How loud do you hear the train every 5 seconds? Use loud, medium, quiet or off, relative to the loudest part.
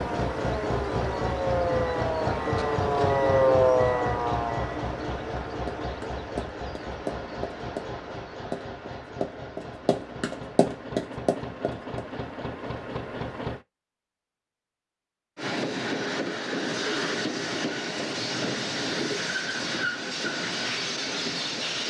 loud, medium, medium, loud, loud.